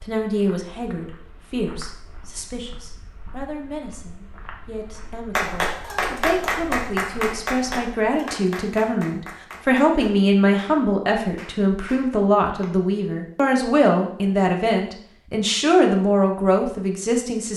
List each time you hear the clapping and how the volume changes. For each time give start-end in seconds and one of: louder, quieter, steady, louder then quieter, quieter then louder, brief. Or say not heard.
5.3-12.8 quieter.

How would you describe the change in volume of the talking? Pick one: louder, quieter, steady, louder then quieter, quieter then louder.
louder.